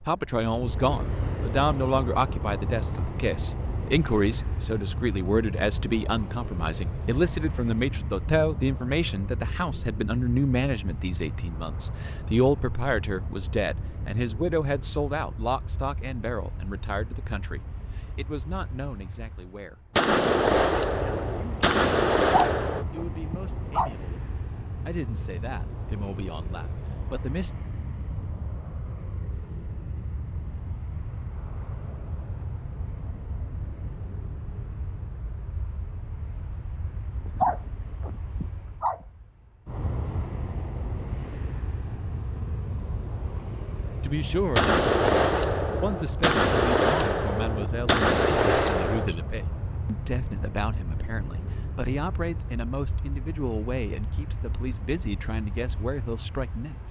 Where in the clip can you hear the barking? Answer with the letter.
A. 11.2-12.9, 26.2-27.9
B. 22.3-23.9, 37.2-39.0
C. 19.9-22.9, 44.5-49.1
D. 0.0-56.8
B.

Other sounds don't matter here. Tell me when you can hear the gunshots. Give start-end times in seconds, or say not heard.
19.9-22.9, 44.5-49.1.